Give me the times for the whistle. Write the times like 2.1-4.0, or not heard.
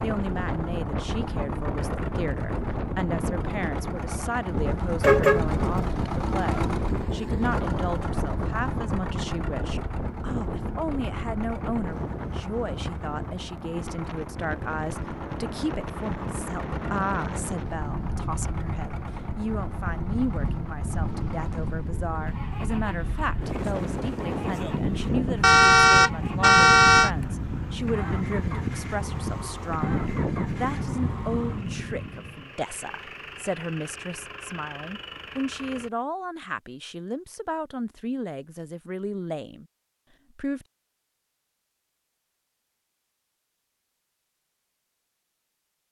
not heard.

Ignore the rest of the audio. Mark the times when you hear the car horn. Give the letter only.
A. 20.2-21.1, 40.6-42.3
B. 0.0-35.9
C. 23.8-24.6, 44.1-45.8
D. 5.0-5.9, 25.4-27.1
D.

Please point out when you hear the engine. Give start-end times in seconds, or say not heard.
0.0-35.9.